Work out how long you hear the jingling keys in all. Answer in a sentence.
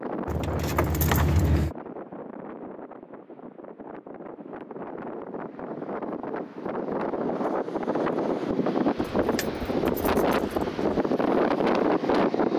You can hear the jingling keys for 3 seconds altogether.